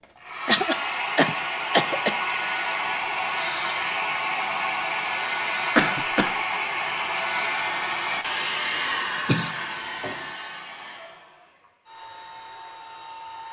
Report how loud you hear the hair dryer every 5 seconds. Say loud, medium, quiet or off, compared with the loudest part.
loud, loud, quiet.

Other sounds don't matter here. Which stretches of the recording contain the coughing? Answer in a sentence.
You can hear the coughing from 0.5 to 2.1 s, from 5.8 to 6.3 s and from 9.2 to 10.2 s.